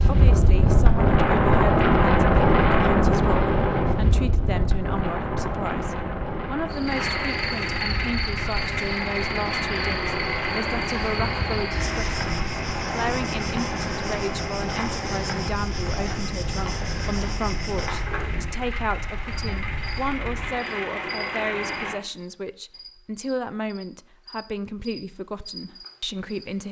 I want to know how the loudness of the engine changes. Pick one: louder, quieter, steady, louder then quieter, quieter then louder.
quieter then louder.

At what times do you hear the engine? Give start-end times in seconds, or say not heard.
6.8-22.0.